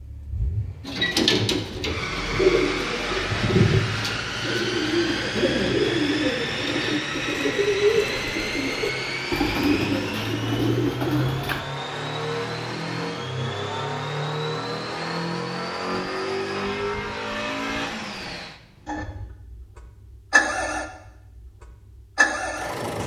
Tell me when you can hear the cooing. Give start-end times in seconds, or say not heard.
0.8-11.6.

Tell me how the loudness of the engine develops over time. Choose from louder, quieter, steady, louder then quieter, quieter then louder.
steady.